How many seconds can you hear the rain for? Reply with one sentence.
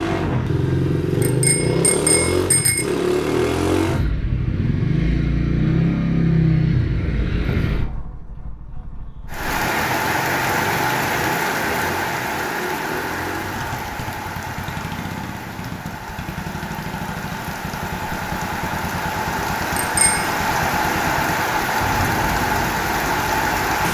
The rain can be heard for 15 seconds in total.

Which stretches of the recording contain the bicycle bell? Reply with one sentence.
You can hear the bicycle bell from 1.2 to 2.9 s and from 19.8 to 20.2 s.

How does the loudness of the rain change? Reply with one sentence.
The loudness of the rain goes down, then up.